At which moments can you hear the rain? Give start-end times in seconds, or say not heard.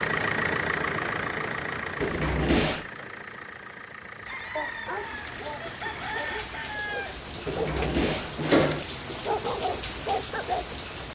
4.8-11.0.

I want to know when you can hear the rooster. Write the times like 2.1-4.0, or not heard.
4.2-7.2.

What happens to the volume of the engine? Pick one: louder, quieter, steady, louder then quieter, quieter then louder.
quieter.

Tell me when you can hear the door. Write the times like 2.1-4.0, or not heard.
2.0-2.9, 7.5-8.8.